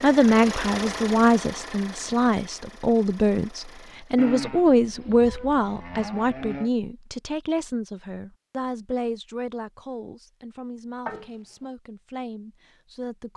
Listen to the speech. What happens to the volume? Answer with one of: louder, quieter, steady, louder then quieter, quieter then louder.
quieter.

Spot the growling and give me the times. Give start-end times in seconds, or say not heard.
11.1-11.7.